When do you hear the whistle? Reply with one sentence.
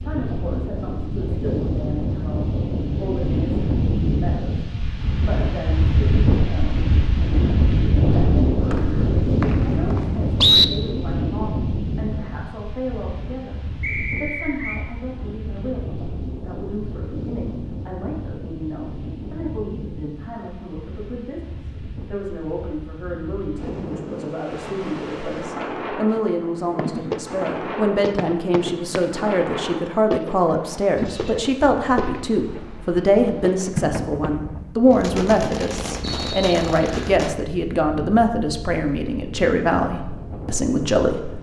You can hear the whistle from 8.7 to 10.7 s, from 13.8 to 14.8 s and from 36.0 to 37.1 s.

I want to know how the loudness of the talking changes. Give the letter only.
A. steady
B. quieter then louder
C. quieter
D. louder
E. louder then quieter
D.